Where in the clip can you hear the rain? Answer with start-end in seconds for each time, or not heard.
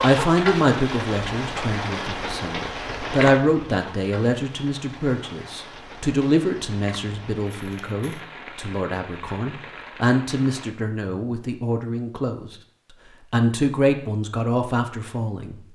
0.0-10.7.